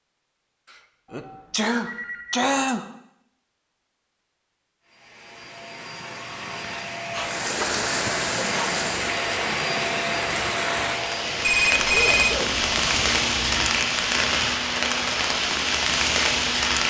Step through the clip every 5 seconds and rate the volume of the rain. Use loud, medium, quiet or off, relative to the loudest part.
off, medium, loud, loud.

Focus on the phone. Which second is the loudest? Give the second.
12 s.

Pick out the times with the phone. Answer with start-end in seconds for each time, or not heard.
1.1-2.5, 7.4-8.1, 11.4-12.3.